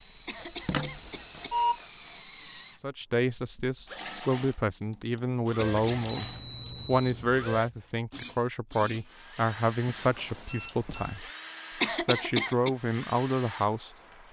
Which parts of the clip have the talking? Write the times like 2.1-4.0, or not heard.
2.8-6.2, 6.8-11.2, 12.0-14.2.